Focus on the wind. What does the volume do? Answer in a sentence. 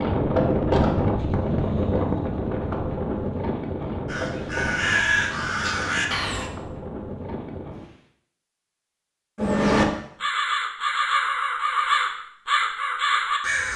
The volume of the wind goes down.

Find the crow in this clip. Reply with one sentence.
The crow can be heard from 4.0 to 6.5 s and from 9.3 to 13.7 s.